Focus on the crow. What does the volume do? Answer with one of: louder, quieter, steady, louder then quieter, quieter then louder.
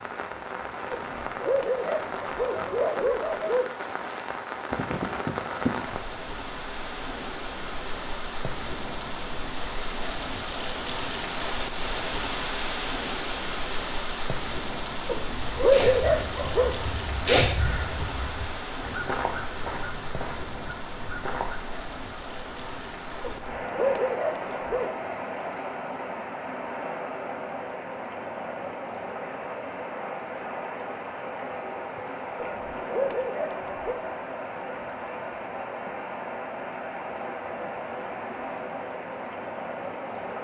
louder then quieter.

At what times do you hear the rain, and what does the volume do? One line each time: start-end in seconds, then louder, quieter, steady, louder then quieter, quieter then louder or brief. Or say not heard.
0.0-40.3 steady.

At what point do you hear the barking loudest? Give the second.
16 s.